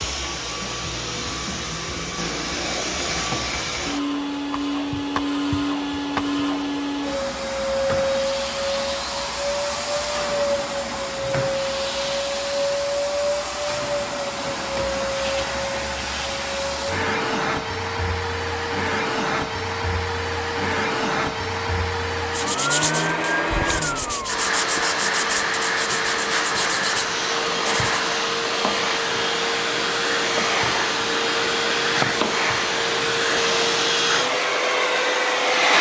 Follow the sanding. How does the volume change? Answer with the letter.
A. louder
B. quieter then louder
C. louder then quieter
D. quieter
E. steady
E.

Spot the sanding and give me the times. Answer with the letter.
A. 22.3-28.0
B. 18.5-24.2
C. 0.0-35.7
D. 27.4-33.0
A.